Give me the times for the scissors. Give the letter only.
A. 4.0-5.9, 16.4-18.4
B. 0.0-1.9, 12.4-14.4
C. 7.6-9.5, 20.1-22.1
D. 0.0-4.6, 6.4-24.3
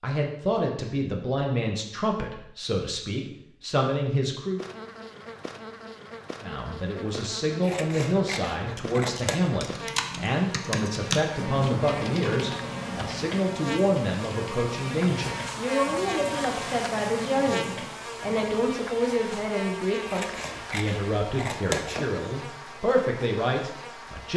C.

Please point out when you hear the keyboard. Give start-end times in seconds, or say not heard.
8.7-18.8.